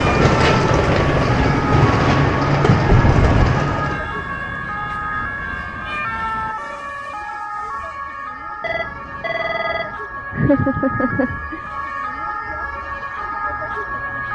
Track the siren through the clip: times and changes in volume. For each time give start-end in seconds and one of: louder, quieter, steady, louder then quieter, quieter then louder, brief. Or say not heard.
0.0-14.3 steady.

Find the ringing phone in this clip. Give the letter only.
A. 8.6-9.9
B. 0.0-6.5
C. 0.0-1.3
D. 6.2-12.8
A.